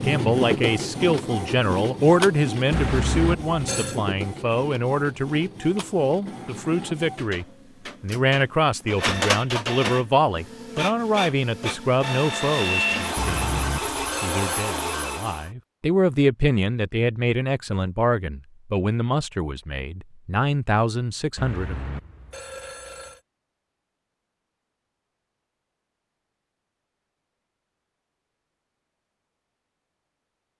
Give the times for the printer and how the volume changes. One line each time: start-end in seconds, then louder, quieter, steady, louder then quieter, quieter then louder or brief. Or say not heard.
0.0-15.5 quieter then louder.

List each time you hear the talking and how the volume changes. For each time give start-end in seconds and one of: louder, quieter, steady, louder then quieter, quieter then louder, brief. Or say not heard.
0.0-21.8 steady.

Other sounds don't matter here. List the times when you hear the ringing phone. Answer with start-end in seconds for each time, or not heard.
2.7-4.0, 13.2-14.8, 21.4-23.2.